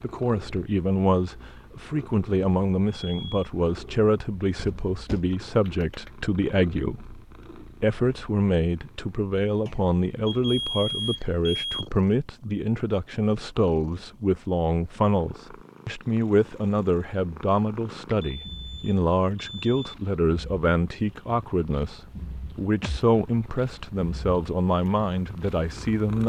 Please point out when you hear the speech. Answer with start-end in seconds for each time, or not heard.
0.0-26.2.